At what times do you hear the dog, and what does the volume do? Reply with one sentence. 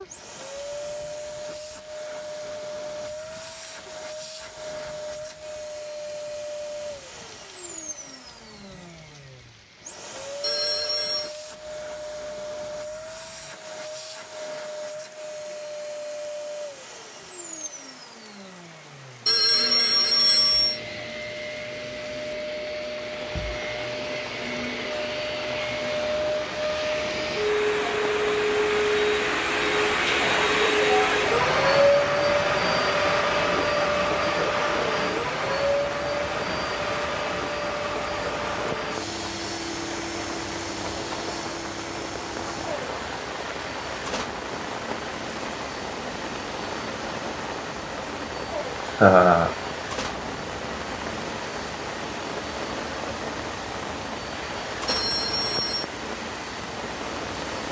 The dog can't be heard in this clip.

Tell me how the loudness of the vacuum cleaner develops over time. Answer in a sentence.
The volume of the vacuum cleaner goes up, then down.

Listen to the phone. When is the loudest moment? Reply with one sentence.
The volume of the phone peaks at 20 seconds.